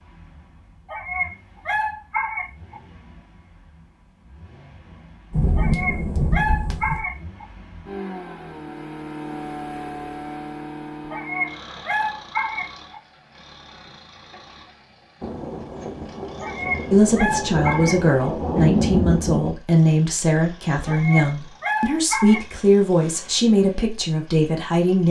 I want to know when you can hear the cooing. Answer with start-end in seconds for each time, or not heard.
not heard.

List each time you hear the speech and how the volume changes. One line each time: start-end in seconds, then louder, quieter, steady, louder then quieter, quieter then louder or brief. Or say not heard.
16.9-25.0 steady.